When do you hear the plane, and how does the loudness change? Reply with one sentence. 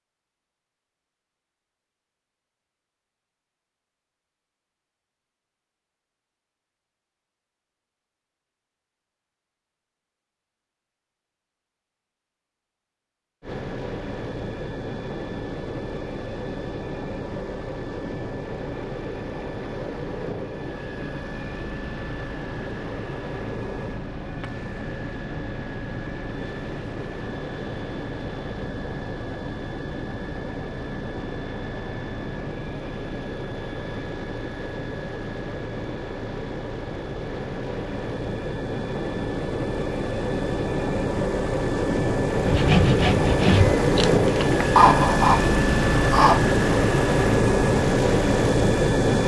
You can hear the plane from 13.4 to 49.2 s, getting louder.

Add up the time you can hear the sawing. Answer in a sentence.
You can hear the sawing for 4 seconds altogether.